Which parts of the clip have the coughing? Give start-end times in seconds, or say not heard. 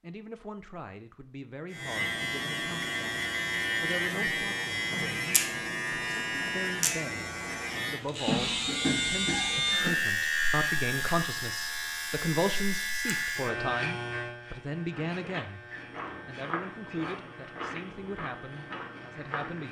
8.2-9.9.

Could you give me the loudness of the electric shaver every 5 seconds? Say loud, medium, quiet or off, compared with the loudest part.
loud, loud, loud, quiet.